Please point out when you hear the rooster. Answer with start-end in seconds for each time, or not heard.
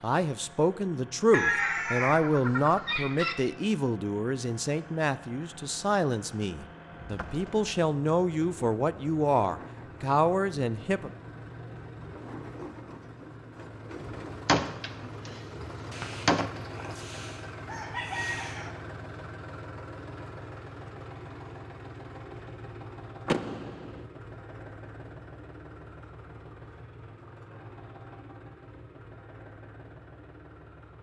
1.3-3.4, 15.9-18.7.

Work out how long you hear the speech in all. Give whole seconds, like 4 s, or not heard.
11 s.